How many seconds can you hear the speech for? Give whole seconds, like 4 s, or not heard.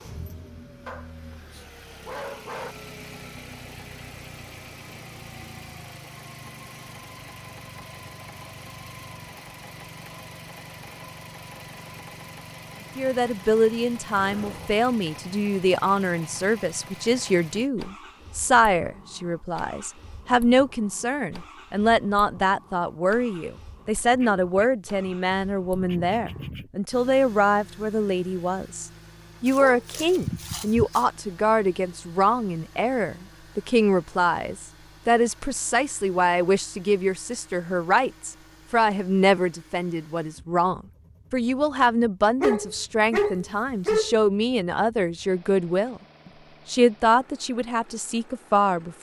35 s.